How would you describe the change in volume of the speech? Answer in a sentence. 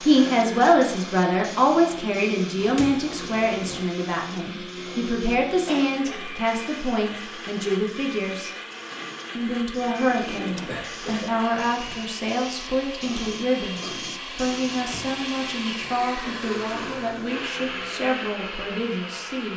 The loudness of the speech goes down.